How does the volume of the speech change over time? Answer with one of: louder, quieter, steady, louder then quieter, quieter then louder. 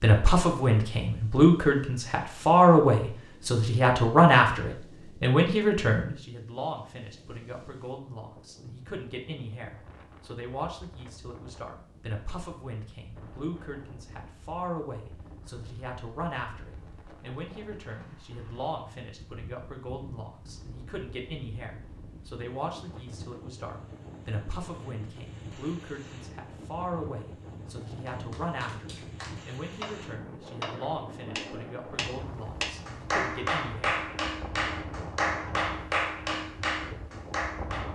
quieter.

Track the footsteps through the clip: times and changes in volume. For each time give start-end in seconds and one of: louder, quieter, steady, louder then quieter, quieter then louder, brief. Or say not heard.
not heard.